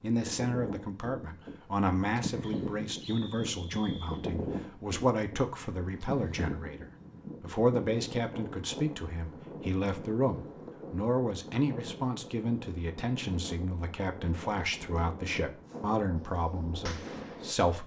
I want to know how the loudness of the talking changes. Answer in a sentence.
The loudness of the talking stays about the same.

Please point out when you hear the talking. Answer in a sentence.
You can hear the talking from 0.0 to 17.8 s.